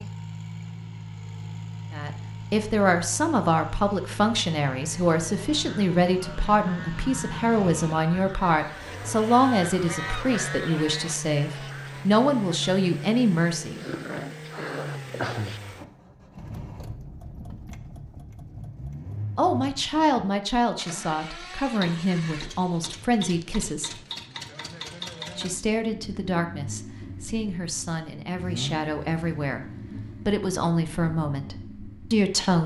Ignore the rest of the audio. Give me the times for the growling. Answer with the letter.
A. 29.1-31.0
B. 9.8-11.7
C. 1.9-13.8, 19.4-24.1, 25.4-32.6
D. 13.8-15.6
D.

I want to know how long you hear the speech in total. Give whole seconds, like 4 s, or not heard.
24 s.